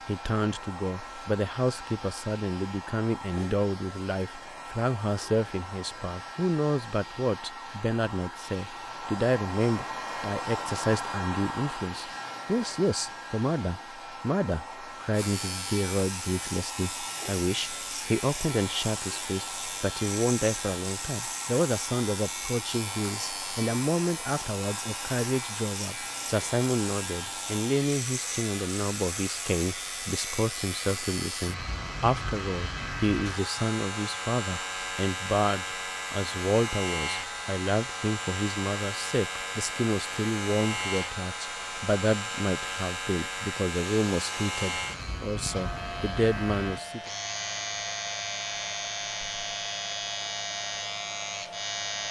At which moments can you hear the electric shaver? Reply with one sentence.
The electric shaver can be heard from 15.1 to 52.0 s.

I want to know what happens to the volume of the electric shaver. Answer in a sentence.
The loudness of the electric shaver stays about the same.